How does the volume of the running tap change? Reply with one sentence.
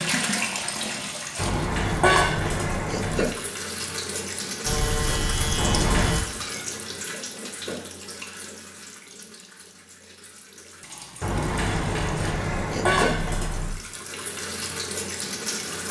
The loudness of the running tap goes down, then up.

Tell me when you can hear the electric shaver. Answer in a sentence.
You can hear the electric shaver from 4.7 to 6.2 s.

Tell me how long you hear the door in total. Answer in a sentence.
The door can be heard for 5 seconds in total.